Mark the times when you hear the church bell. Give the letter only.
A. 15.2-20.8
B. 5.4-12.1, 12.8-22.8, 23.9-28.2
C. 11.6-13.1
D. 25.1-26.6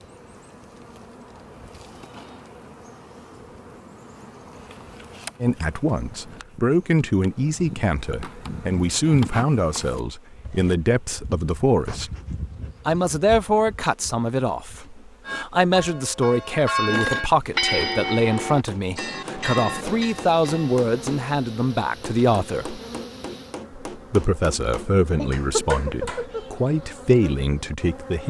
A.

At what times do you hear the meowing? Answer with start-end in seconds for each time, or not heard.
25.1-26.6.